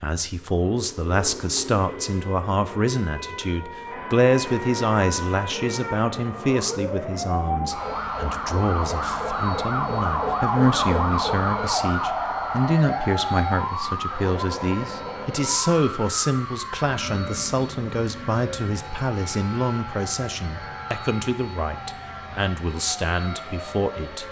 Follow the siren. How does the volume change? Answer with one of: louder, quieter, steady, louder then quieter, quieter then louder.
louder then quieter.